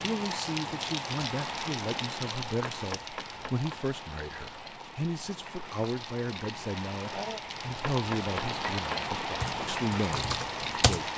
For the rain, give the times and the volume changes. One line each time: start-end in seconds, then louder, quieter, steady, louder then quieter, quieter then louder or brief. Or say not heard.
0.0-11.1 quieter then louder.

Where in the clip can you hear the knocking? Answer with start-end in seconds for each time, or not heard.
2.6-3.8, 7.8-9.1.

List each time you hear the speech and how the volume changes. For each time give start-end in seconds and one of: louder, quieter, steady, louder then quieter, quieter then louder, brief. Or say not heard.
0.0-11.1 steady.